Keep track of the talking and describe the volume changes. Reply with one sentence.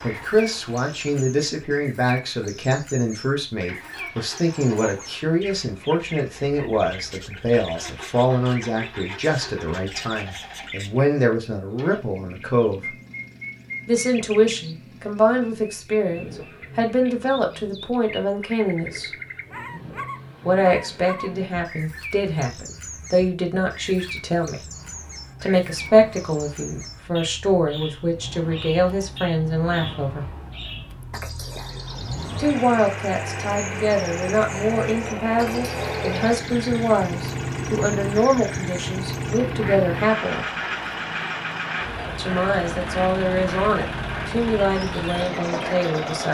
The volume of the talking stays about the same.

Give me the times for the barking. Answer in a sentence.
You can't hear the barking here.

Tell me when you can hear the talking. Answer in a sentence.
The talking can be heard from 0.0 to 12.9 s, from 13.8 to 19.1 s, from 20.4 to 24.6 s, from 25.4 to 30.2 s, from 32.4 to 40.5 s and from 42.1 to 46.2 s.